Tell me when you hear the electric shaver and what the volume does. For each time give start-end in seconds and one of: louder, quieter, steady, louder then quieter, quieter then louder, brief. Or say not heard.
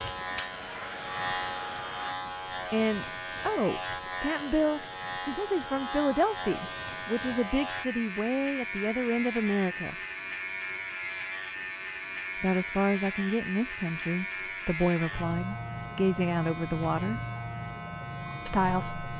0.0-19.1 steady.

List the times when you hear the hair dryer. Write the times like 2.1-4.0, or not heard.
0.1-2.1.